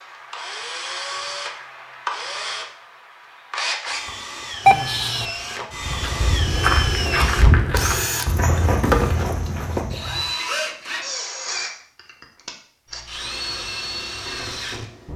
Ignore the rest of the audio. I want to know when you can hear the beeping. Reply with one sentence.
You can hear the beeping from 4.7 to 5.2 s.